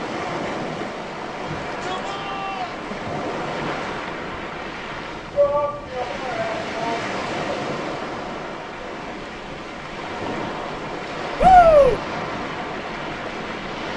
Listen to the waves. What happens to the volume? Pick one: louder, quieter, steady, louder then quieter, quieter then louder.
steady.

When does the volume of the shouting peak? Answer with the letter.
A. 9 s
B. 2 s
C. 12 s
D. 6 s
C.